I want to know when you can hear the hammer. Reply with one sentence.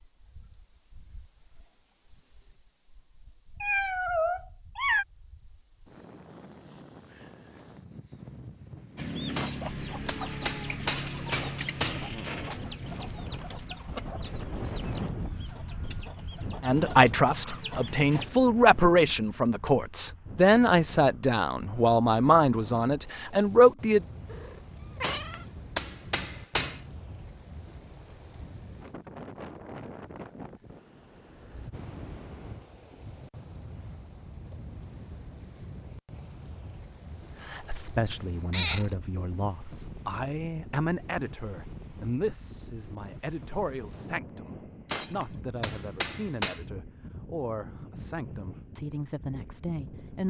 You can hear the hammer from 9.3 to 12.1 s, from 25.0 to 26.8 s and from 44.9 to 46.6 s.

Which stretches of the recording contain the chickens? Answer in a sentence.
The chickens can be heard from 8.9 to 18.3 s.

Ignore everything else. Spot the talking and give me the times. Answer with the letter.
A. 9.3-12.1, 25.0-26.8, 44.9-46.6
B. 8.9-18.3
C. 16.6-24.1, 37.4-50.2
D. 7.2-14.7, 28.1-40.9
C.